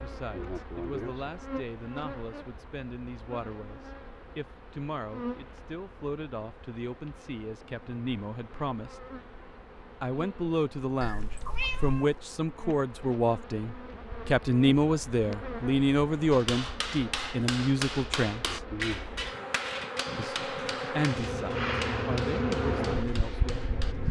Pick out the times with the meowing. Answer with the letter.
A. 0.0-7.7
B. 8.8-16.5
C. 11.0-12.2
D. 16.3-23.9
C.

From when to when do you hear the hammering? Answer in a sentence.
The hammering can be heard from 16.3 to 23.9 s.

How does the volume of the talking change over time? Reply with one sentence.
The volume of the talking goes up, then down.